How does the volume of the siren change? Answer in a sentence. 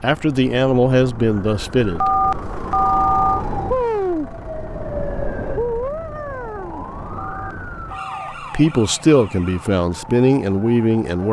The volume of the siren goes up, then down.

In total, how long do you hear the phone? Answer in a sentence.
You can hear the phone for 3 seconds altogether.